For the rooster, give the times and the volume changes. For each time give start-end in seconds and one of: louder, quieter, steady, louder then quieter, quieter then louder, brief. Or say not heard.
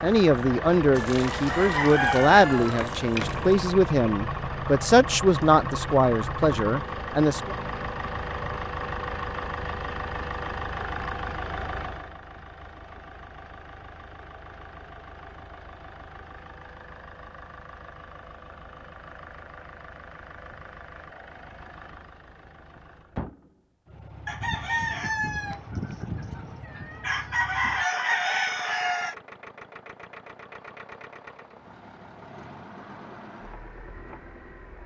0.9-3.6 brief
24.2-29.1 quieter then louder.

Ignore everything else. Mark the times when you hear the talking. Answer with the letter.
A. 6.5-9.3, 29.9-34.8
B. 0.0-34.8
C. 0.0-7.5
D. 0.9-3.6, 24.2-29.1
C.